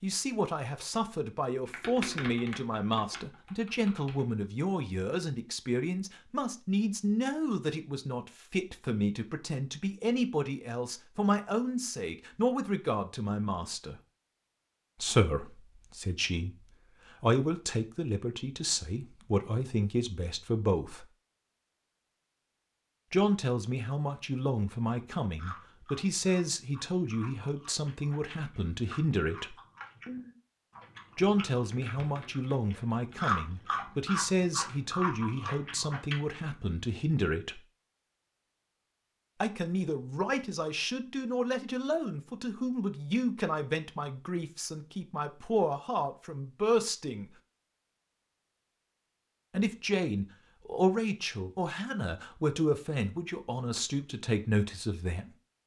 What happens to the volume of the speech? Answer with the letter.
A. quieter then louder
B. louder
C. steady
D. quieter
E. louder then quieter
C.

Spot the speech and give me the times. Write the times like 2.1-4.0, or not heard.
0.0-13.9, 15.0-21.1, 23.1-29.6, 31.1-37.6, 39.4-47.3, 49.5-55.3.